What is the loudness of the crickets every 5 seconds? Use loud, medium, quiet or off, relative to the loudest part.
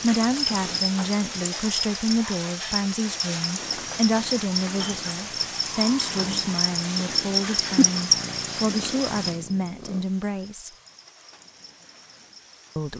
loud, loud, quiet.